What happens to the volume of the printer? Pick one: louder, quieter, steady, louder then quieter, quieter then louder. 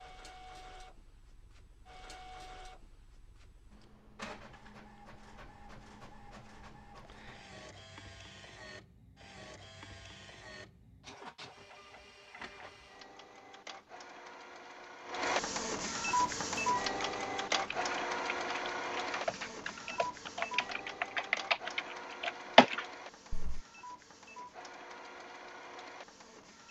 louder then quieter.